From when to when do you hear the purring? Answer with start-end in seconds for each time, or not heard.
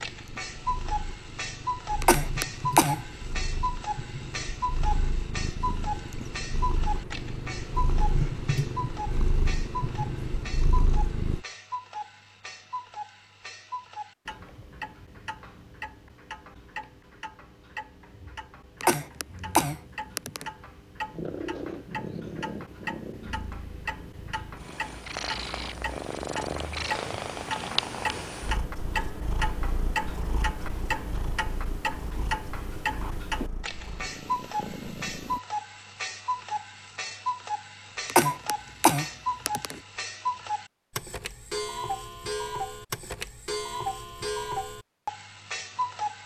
0.0-11.4, 21.1-35.4.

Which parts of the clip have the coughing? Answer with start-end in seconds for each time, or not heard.
2.0-3.0, 18.8-20.4, 38.0-39.8.